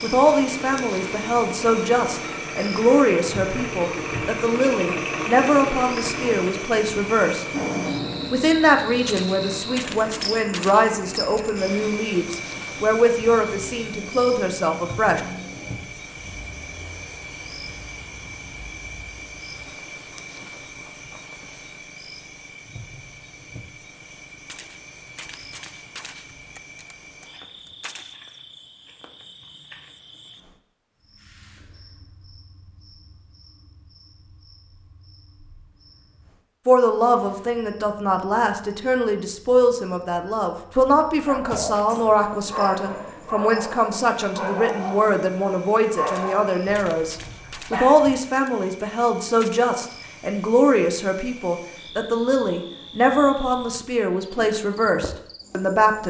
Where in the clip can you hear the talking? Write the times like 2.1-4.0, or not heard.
0.0-7.5, 8.3-15.2, 36.6-56.0.